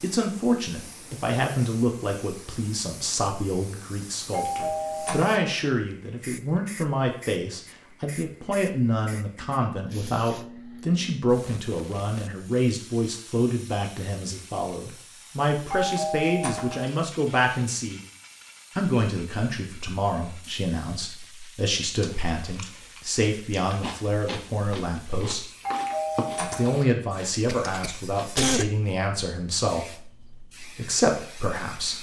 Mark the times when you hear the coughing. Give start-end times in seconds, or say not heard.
27.4-28.7.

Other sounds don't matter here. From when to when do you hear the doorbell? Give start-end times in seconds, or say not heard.
4.3-5.4, 15.7-16.9, 25.6-26.9.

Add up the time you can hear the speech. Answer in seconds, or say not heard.
30 s.